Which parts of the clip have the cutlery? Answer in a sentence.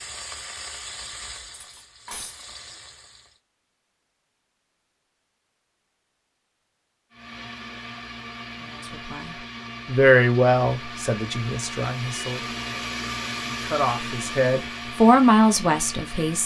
You can hear the cutlery from 1.6 to 2.5 s.